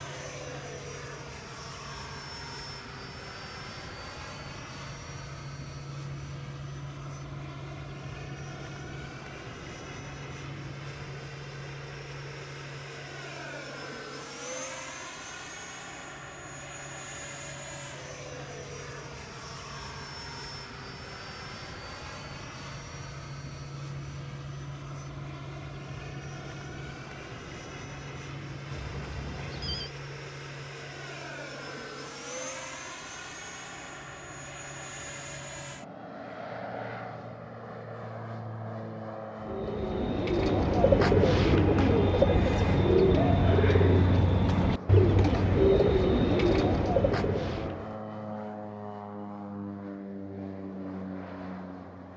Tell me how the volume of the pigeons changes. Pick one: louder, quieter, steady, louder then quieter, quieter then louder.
steady.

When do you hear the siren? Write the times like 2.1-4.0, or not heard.
not heard.